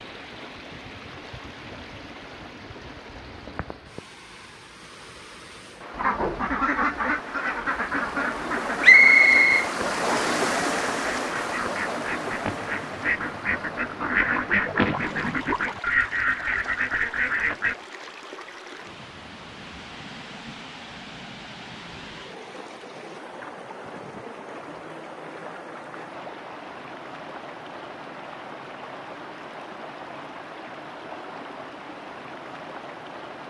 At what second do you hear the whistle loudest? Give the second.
9 s.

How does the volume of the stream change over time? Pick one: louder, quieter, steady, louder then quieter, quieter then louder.
louder then quieter.